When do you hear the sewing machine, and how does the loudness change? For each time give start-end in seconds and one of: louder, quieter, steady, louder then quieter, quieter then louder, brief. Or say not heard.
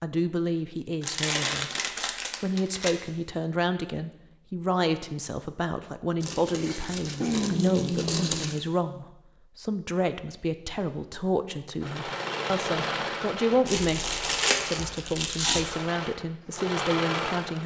11.8-17.6 quieter then louder.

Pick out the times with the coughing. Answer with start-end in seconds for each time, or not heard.
not heard.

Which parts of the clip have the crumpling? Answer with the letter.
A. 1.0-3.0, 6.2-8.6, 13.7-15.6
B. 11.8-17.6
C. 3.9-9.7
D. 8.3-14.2
A.